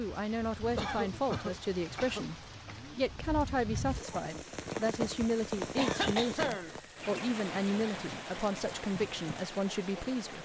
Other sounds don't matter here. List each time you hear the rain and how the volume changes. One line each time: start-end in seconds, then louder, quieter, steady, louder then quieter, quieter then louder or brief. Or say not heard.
0.0-10.3 louder then quieter.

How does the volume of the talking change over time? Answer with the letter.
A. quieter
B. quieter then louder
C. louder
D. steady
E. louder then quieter
D.